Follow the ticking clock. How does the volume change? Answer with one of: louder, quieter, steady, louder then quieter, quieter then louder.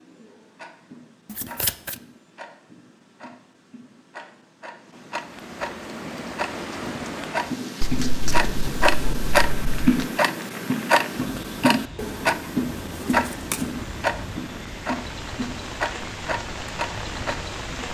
louder then quieter.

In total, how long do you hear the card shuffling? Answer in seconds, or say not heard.
4 s.